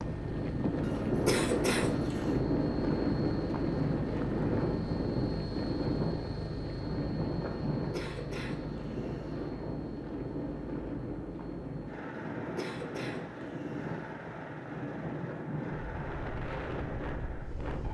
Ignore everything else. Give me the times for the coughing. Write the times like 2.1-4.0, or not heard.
0.8-2.4, 7.8-9.5, 12.3-14.2.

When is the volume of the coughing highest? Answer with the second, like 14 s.
1 s.